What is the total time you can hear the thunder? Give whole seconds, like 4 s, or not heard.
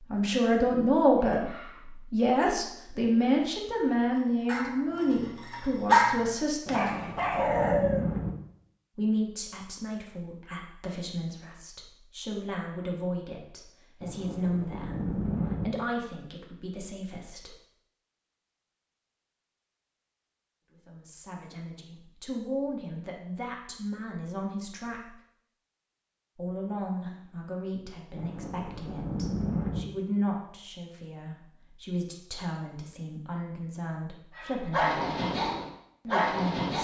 5 s.